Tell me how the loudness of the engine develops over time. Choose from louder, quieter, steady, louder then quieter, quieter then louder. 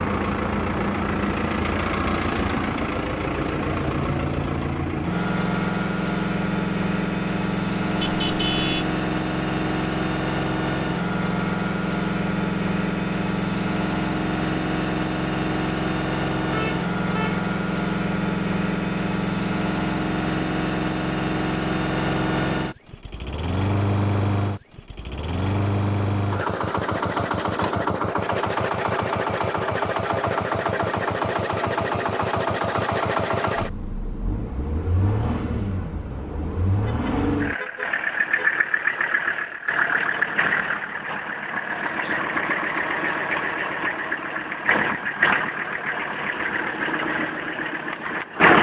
steady.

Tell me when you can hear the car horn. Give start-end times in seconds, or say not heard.
8.0-8.8, 16.5-17.4, 36.9-38.5.